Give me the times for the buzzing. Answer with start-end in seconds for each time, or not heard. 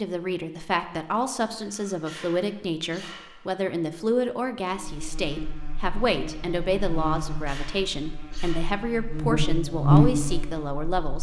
4.7-10.8.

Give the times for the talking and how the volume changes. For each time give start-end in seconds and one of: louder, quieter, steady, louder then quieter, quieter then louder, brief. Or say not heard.
0.0-11.1 steady.